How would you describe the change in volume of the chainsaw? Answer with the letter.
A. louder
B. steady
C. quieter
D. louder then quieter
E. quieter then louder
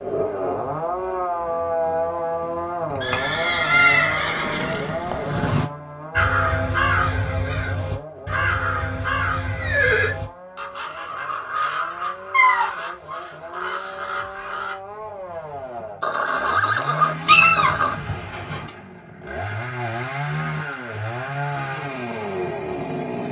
E.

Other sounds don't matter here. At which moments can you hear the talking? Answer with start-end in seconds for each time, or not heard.
not heard.